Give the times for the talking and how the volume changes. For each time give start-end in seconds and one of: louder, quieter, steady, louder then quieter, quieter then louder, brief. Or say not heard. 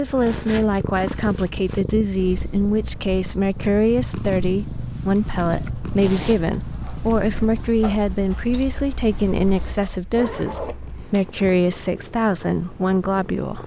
0.0-13.6 steady.